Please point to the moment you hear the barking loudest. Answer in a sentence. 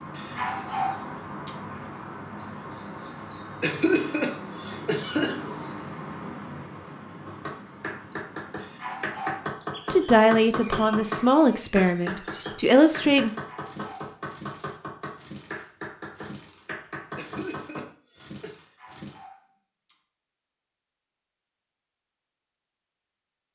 The loudest moment of the barking is at 1 second.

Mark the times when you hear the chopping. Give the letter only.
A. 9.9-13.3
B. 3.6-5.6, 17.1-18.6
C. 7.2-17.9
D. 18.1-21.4
C.